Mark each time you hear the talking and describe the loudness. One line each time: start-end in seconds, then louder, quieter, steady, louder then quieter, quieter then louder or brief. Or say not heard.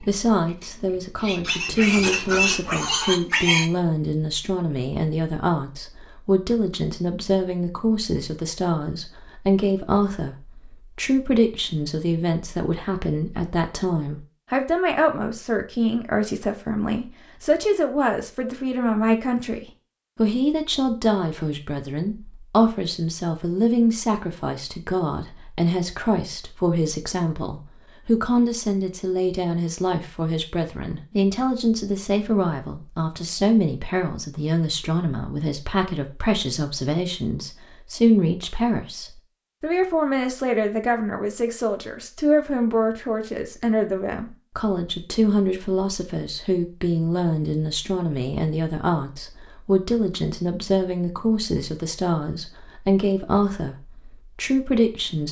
0.0-55.2 steady.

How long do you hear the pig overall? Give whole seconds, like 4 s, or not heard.
4 s.